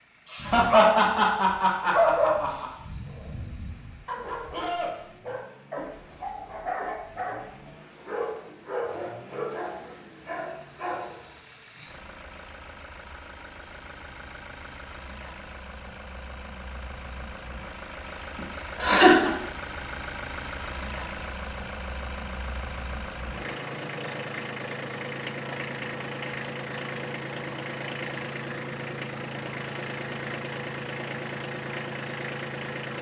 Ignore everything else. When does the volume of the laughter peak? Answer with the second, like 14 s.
19 s.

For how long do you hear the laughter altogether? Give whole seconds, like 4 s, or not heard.
3 s.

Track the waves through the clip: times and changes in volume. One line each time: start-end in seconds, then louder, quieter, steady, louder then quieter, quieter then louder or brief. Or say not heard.
not heard.